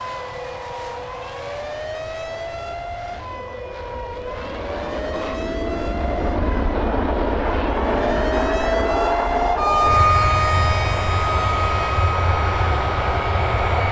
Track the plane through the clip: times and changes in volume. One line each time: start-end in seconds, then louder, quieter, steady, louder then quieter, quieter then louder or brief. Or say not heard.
0.0-13.8 louder.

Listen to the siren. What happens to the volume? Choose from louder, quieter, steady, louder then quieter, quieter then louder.
louder then quieter.